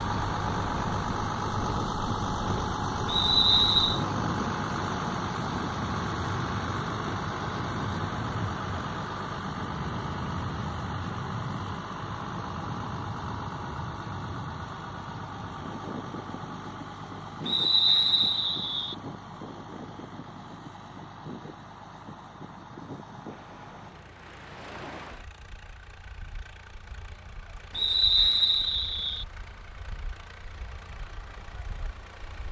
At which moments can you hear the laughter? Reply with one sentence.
You can't hear the laughter here.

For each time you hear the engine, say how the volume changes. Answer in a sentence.
You can hear the engine from 0.0 to 32.4 s, getting quieter.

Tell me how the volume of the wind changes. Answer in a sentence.
The volume of the wind goes down.